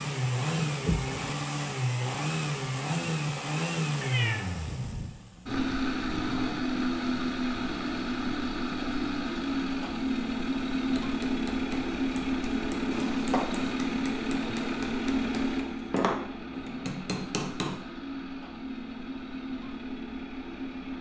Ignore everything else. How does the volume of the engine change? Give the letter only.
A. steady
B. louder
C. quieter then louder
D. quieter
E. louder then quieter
D.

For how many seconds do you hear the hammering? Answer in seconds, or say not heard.
7 s.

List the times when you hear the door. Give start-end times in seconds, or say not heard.
0.8-1.4.